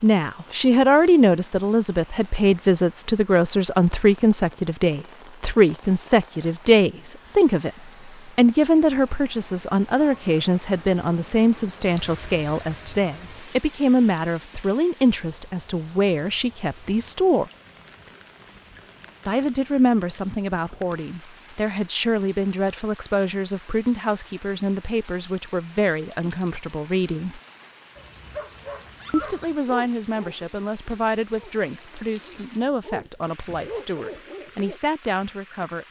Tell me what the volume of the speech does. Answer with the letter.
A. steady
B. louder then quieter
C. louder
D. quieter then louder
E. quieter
E.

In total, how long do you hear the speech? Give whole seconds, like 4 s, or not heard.
32 s.